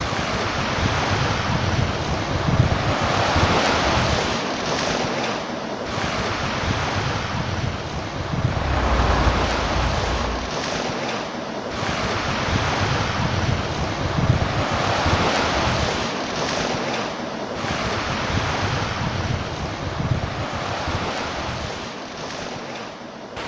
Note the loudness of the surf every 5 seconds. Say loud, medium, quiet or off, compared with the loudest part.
loud, loud, loud, loud, medium.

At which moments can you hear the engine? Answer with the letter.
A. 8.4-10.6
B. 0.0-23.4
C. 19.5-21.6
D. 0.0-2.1
A.